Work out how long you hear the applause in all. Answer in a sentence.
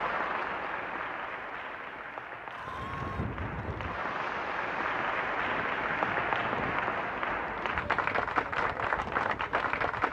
You can hear the applause for 10 seconds altogether.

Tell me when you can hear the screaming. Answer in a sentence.
The screaming can be heard from 2.5 to 3.3 s.